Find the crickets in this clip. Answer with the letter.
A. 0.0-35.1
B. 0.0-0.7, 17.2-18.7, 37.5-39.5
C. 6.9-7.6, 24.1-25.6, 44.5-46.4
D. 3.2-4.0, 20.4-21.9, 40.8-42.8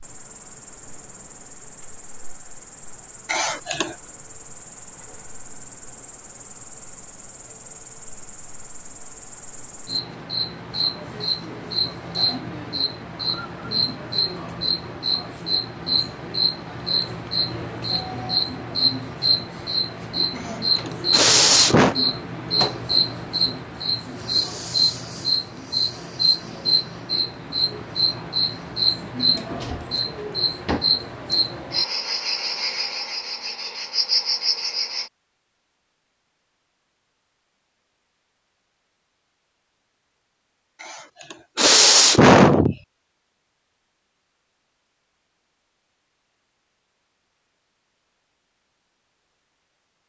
A.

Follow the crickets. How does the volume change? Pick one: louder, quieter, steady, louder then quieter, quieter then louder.
louder.